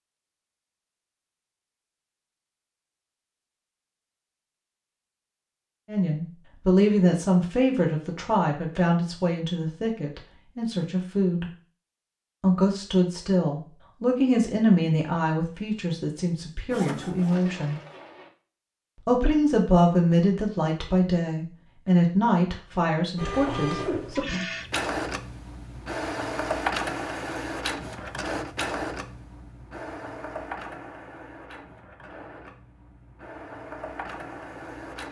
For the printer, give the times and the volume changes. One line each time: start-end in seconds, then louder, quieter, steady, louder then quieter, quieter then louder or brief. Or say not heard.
16.7-18.3 brief
23.1-35.0 quieter.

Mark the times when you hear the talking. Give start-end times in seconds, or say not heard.
5.8-11.5, 12.4-17.8, 19.1-24.4.